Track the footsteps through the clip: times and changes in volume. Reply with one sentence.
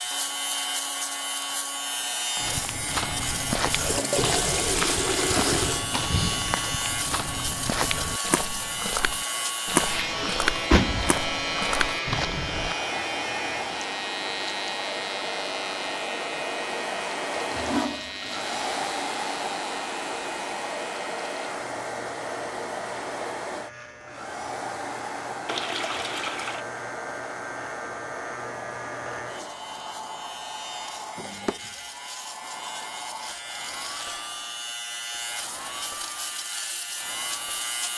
The footsteps can be heard from 2.4 to 12.8 s, at a steady volume.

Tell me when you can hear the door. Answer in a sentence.
You can hear the door from 10.2 to 11.2 s.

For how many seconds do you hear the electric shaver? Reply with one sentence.
You can hear the electric shaver for 38 seconds altogether.